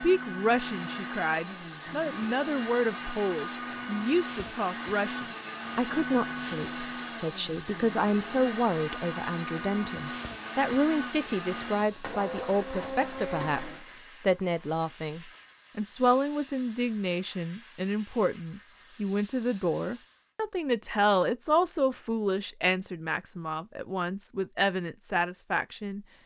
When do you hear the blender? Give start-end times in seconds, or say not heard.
0.0-13.8.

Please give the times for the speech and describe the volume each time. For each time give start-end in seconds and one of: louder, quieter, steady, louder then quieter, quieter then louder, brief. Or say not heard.
0.0-26.1 steady.